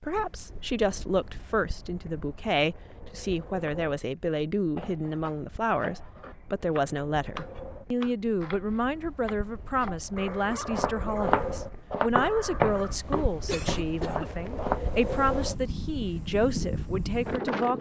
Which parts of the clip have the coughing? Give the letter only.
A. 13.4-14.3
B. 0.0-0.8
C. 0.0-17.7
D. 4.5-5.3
A.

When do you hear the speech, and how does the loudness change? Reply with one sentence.
You can hear the speech from 0.0 to 17.7 s, at a steady volume.